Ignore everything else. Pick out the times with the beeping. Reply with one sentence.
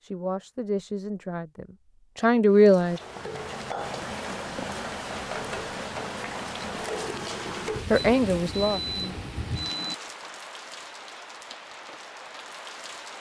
You can hear the beeping from 8.0 to 9.9 s.